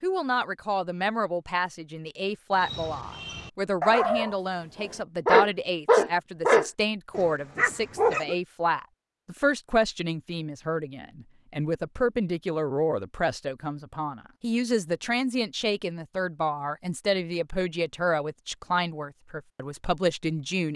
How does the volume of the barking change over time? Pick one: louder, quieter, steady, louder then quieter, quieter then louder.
louder then quieter.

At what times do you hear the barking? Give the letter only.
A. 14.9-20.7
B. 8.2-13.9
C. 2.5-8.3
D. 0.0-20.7
C.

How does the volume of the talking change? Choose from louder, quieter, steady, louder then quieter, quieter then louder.
steady.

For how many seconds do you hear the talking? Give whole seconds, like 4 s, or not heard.
21 s.